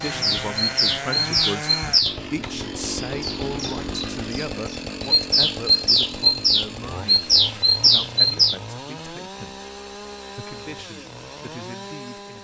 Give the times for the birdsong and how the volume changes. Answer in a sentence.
The birdsong can be heard from 0.0 to 8.6 s, getting quieter then louder.